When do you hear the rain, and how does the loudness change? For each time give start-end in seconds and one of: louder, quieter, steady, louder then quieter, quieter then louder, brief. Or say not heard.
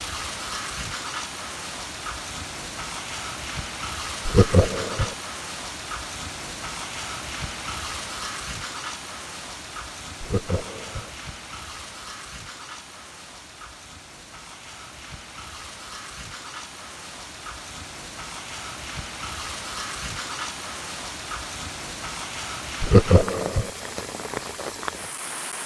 0.0-25.6 quieter then louder.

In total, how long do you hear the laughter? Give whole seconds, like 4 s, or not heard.
3 s.